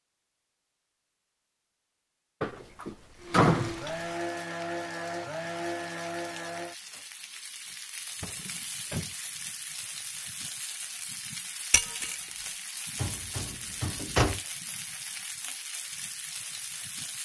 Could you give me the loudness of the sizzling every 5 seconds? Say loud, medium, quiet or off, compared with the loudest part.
medium, loud, loud, loud.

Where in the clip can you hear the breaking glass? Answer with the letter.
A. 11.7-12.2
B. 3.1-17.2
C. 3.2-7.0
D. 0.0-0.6
A.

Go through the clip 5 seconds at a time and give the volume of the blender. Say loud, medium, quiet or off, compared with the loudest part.
loud, loud, off, off.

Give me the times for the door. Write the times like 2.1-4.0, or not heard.
2.4-3.8, 8.2-9.2, 12.9-14.4.